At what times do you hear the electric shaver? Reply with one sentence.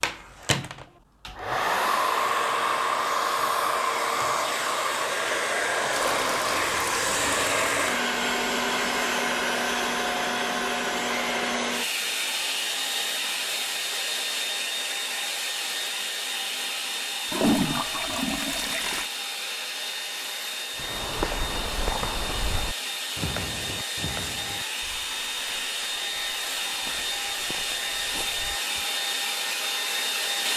You can't hear the electric shaver here.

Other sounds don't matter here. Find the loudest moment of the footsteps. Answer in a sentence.
The volume of the footsteps peaks at 21 seconds.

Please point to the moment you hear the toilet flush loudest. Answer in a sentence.
The volume of the toilet flush peaks at 18 seconds.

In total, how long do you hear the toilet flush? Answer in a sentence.
The toilet flush can be heard for 4 seconds in total.